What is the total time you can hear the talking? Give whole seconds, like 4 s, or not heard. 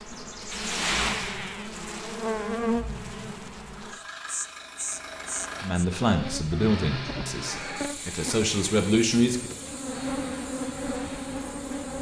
4 s.